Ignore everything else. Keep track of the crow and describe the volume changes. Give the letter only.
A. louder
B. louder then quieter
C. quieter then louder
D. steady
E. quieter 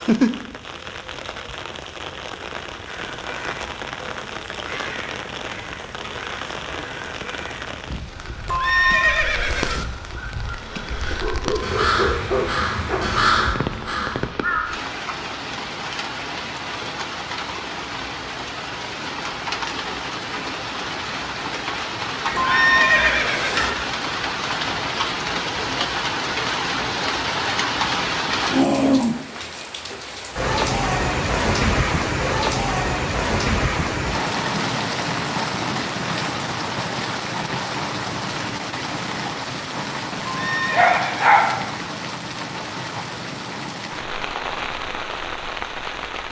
A.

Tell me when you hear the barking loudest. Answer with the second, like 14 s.
41 s.